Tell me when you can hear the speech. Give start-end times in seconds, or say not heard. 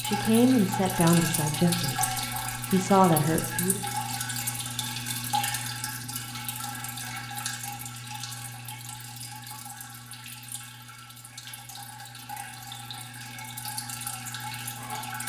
0.0-3.8.